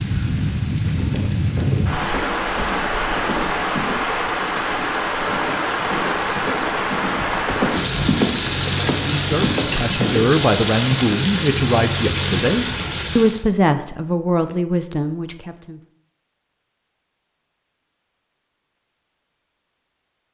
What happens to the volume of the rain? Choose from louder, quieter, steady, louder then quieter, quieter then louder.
steady.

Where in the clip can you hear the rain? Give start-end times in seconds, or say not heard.
0.0-13.4.